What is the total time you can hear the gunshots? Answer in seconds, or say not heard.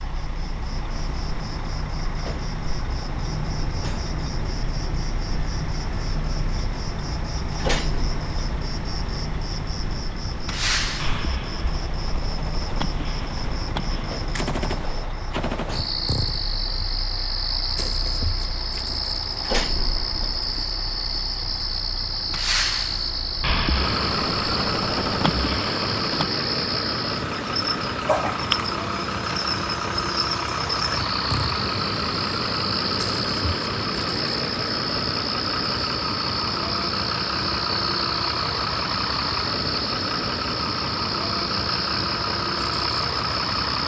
8 s.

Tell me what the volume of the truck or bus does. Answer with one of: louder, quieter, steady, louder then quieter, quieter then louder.
louder.